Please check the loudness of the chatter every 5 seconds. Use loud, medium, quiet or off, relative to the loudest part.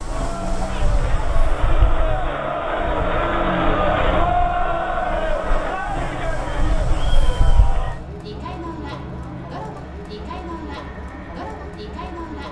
loud, medium, medium.